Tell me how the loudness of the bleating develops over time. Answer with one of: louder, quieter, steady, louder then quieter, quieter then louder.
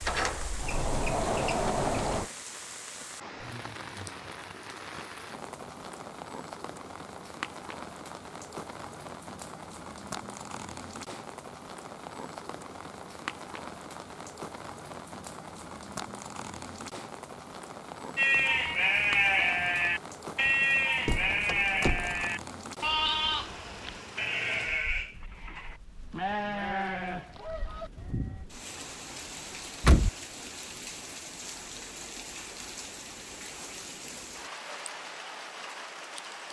quieter.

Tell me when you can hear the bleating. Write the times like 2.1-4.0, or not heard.
18.1-28.4.